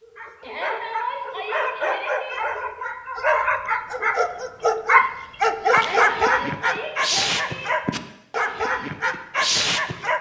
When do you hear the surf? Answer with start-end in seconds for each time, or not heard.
not heard.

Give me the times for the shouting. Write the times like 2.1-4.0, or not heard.
0.4-2.4, 5.7-7.7.